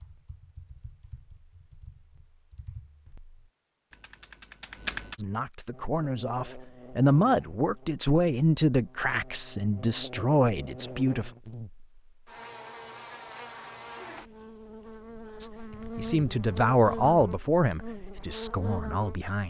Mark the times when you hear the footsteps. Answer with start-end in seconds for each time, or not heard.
not heard.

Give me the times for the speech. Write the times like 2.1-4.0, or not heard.
5.2-11.3, 15.4-19.4.